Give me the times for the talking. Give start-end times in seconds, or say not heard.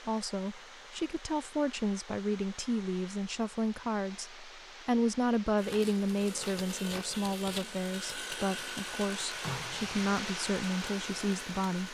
0.0-11.8.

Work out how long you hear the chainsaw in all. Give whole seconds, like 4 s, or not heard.
6 s.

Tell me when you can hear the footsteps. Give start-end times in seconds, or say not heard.
not heard.